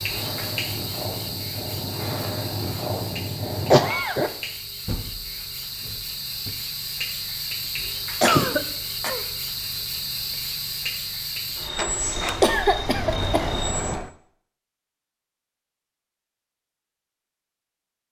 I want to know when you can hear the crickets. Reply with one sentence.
You can hear the crickets from 0.0 to 13.9 s.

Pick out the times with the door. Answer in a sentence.
You can hear the door from 4.8 to 6.5 s and from 11.8 to 14.1 s.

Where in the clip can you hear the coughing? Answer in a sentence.
The coughing can be heard from 3.7 to 4.3 s, from 8.2 to 9.2 s and from 12.4 to 13.6 s.